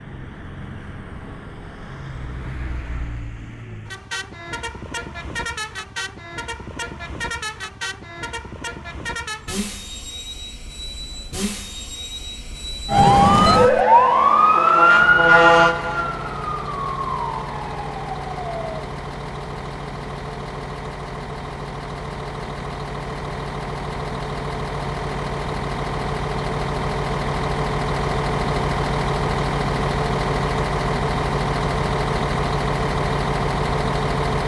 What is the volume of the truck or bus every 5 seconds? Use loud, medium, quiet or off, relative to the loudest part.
quiet, medium, medium, medium, medium, loud, loud.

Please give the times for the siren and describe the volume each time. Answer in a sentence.
You can hear the siren from 12.8 to 18.9 s, getting quieter.